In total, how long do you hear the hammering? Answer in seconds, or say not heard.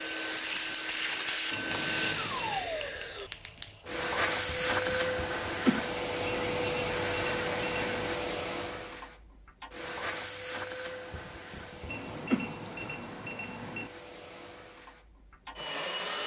not heard.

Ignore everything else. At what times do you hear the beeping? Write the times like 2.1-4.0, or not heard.
1.5-2.6, 6.2-8.2, 11.8-13.9.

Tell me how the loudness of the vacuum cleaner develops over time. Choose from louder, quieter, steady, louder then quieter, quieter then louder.
quieter.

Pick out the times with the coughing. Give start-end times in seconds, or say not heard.
4.5-5.9, 11.1-12.9.